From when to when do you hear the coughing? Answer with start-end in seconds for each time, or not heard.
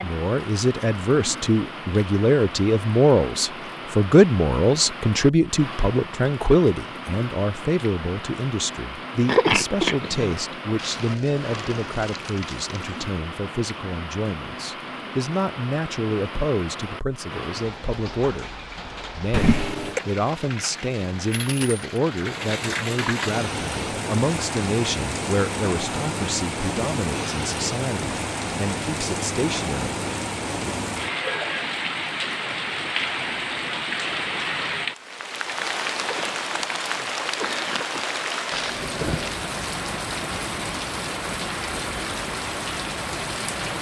9.2-10.3, 19.3-20.0, 36.0-38.0.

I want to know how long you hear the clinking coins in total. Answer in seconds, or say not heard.
4 s.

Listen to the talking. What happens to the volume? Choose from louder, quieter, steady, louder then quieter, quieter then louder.
quieter.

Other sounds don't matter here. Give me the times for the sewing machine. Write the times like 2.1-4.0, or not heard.
not heard.